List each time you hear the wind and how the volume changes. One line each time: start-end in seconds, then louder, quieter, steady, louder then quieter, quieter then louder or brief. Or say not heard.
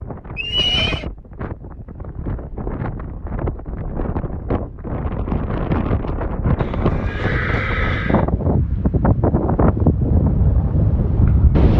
0.0-11.7 louder.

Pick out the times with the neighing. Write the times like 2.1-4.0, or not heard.
0.3-1.1, 6.5-8.2.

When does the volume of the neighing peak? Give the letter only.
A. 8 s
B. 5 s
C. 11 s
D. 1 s
D.